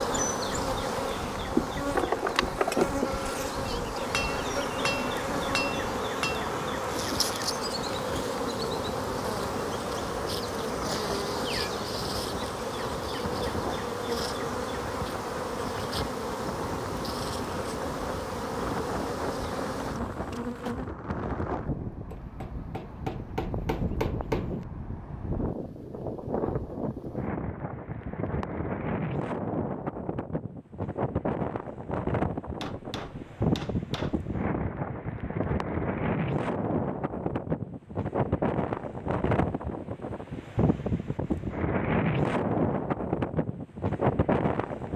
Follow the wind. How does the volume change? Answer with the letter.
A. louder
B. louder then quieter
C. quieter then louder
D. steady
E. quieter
A.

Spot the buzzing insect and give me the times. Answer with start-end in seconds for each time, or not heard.
0.0-20.9.